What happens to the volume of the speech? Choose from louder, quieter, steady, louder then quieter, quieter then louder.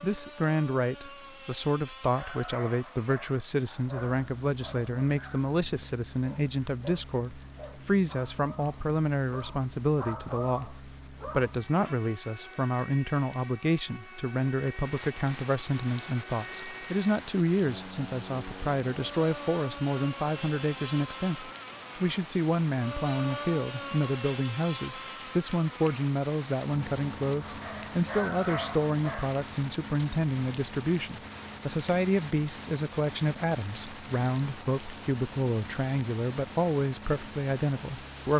steady.